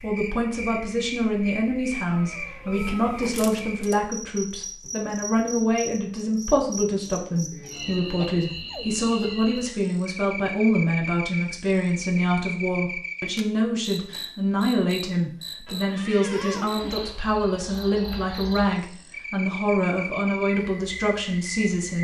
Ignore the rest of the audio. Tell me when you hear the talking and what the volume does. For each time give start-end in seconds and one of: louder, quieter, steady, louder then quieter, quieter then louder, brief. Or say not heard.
0.0-21.9 steady.